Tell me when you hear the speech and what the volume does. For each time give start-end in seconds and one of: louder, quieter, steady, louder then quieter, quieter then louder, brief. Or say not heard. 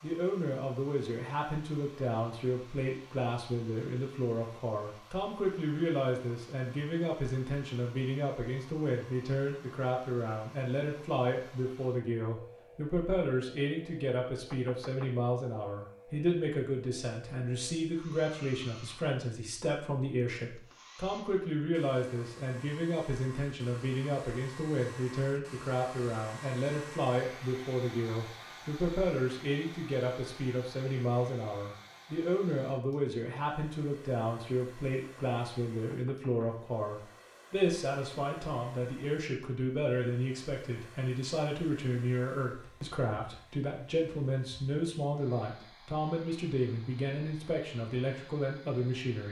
0.0-49.2 steady.